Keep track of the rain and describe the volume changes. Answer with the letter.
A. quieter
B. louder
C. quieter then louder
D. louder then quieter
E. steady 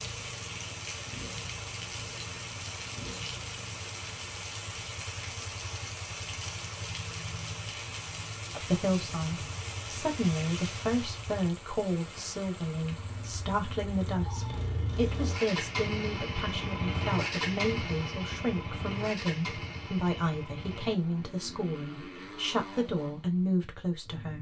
A.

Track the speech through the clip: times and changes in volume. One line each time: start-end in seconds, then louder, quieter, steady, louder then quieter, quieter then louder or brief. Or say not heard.
8.6-24.3 steady.